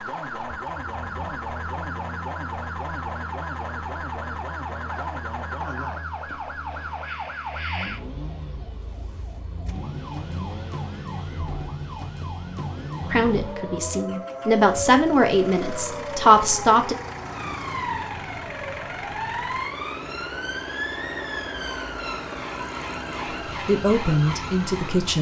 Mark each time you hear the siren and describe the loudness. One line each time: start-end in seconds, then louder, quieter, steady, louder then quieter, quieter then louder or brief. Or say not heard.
0.0-25.1 steady.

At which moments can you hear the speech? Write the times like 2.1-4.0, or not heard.
13.1-16.9, 23.4-25.1.